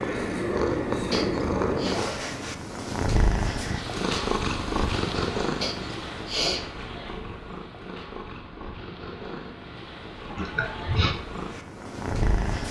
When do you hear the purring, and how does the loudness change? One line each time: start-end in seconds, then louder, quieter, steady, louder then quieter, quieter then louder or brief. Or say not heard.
0.0-12.6 quieter.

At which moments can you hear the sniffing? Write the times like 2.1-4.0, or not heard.
1.1-2.0, 5.6-6.6, 10.3-11.2.